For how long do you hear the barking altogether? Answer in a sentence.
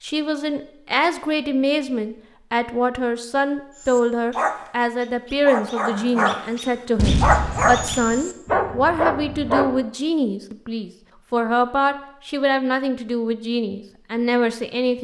The barking can be heard for 6 seconds in total.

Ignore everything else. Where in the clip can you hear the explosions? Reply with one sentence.
The explosions can be heard from 7.0 to 8.2 s.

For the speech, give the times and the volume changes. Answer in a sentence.
The speech can be heard from 0.0 to 14.9 s, at a steady volume.